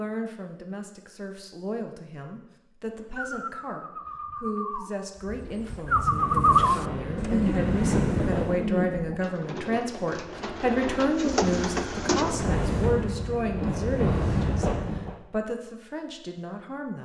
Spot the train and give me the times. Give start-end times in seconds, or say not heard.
6.0-8.7, 12.2-15.2.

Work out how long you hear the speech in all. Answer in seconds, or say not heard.
17 s.